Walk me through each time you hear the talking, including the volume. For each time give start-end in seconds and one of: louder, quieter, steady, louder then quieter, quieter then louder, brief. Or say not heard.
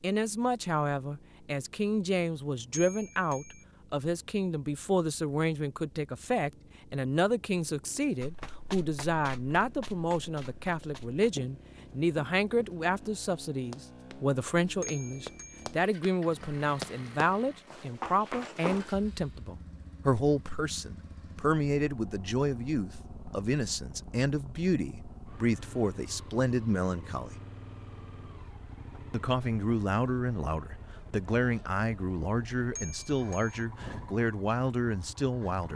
0.0-27.3 steady
29.1-35.7 steady.